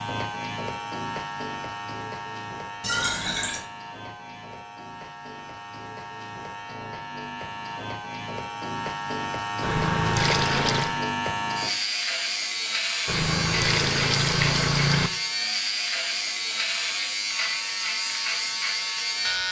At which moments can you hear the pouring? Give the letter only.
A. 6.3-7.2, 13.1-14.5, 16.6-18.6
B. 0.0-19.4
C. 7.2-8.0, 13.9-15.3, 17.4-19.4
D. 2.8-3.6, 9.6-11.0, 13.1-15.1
D.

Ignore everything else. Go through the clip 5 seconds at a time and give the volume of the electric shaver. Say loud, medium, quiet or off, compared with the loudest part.
medium, medium, loud, loud.